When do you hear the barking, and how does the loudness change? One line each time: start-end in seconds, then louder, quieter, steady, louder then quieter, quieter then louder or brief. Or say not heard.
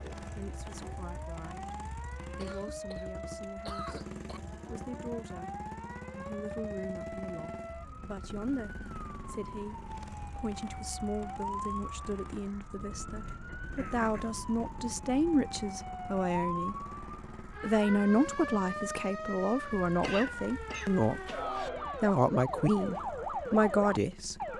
not heard.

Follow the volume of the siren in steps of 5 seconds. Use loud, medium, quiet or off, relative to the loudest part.
medium, medium, medium, loud, loud.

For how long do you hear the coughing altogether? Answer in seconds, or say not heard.
5 s.